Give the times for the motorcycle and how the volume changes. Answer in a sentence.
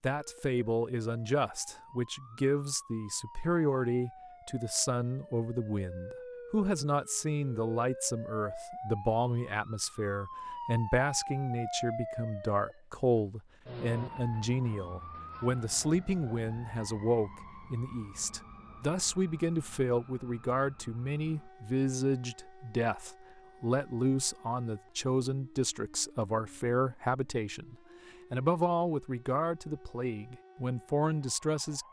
You can't hear the motorcycle here.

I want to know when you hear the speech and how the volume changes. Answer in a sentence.
The speech can be heard from 0.0 to 31.8 s, at a steady volume.